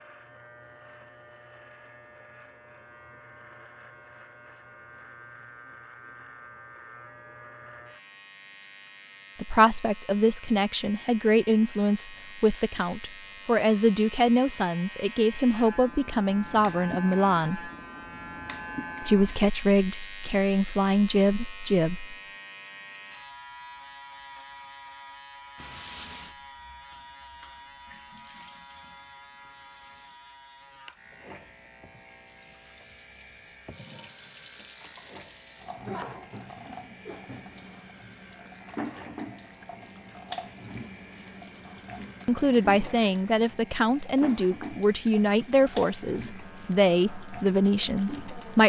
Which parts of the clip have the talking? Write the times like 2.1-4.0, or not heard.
9.3-17.7, 19.0-22.1, 42.2-48.6.